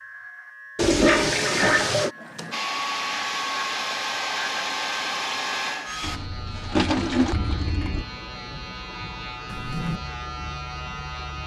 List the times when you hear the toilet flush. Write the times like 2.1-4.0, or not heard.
0.8-2.1, 6.0-8.1.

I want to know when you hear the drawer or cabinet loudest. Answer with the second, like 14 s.
10 s.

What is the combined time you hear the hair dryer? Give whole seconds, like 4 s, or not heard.
4 s.